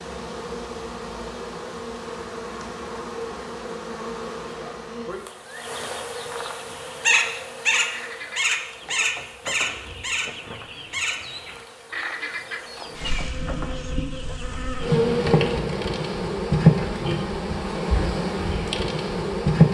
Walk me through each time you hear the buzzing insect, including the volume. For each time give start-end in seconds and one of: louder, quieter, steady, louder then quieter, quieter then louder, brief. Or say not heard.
0.0-19.6 louder.